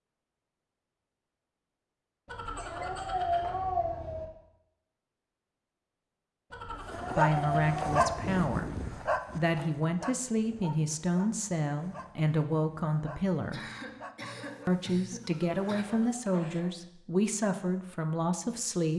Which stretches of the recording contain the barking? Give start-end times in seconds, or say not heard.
6.7-16.9.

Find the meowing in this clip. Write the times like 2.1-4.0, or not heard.
2.2-4.2, 6.5-8.2, 15.2-16.2.